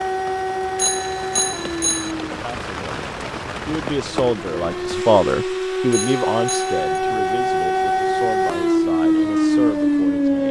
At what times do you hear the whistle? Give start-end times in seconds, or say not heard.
not heard.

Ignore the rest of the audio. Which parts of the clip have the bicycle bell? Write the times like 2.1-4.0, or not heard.
0.8-2.1, 5.9-7.0.